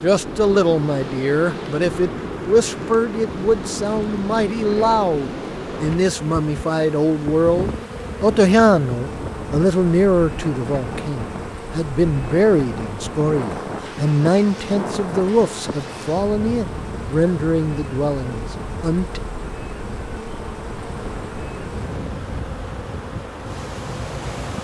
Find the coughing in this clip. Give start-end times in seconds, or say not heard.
not heard.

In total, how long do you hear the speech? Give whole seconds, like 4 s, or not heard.
19 s.